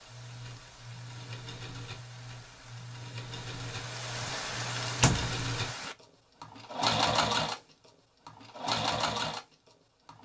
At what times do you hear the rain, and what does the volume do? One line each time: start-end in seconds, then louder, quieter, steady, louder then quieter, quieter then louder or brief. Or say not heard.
0.0-6.0 louder.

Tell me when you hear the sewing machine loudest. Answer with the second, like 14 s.
7 s.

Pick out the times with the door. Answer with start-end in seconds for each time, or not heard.
4.2-5.3.